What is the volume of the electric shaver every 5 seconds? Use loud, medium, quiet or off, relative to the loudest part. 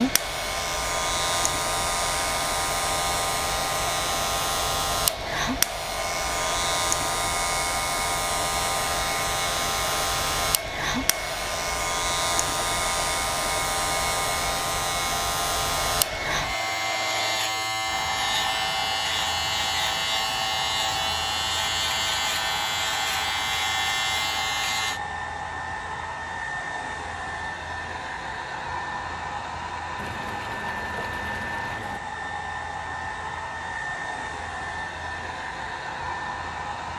loud, loud, loud, loud, loud, off, off, off.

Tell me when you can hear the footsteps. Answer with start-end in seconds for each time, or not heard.
not heard.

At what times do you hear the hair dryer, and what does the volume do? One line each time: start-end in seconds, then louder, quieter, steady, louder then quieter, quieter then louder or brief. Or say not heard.
0.0-36.9 steady.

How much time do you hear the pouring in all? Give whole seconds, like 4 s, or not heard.
2 s.